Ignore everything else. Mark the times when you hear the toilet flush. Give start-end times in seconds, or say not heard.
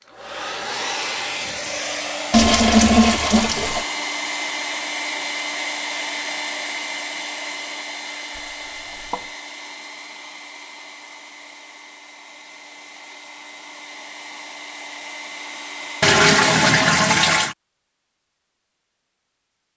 2.3-3.9, 8.3-9.2, 16.0-17.6.